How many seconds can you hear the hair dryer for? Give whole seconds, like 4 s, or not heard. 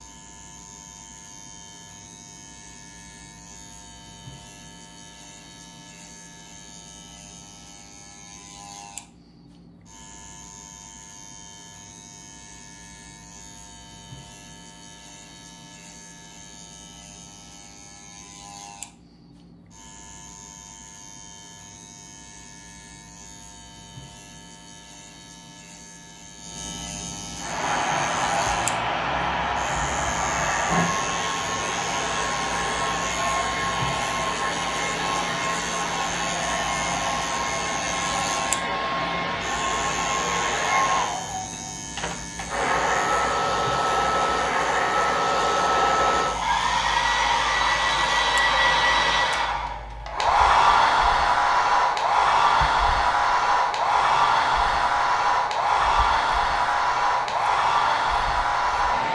32 s.